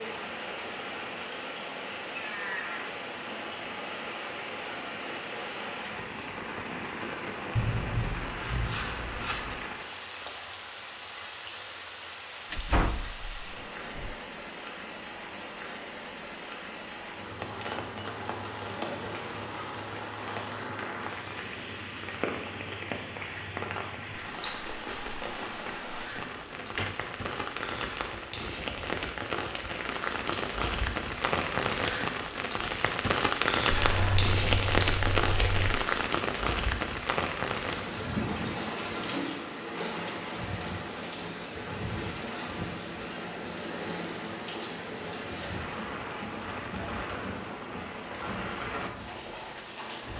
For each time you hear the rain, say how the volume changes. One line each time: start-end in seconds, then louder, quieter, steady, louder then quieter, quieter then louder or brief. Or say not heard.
0.0-50.1 louder then quieter.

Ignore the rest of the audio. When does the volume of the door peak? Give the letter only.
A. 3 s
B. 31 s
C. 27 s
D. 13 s
D.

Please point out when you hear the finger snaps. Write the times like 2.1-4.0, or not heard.
not heard.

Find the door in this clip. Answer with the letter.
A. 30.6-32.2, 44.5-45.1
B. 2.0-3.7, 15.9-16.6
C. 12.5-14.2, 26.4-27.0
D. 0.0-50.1
C.